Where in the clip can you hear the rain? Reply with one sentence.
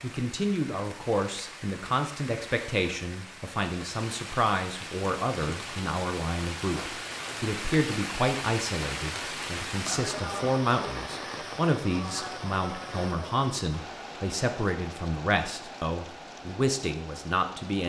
The rain can be heard from 0.0 to 17.8 s.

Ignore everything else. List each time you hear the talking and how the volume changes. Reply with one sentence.
You can hear the talking from 0.0 to 17.8 s, at a steady volume.